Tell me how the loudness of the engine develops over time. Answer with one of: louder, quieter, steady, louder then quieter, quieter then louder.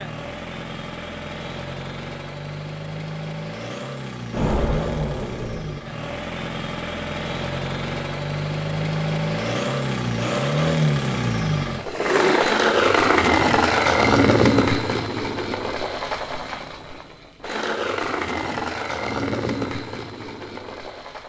louder then quieter.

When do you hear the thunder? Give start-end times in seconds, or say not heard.
4.3-5.8.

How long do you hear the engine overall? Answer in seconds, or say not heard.
21 s.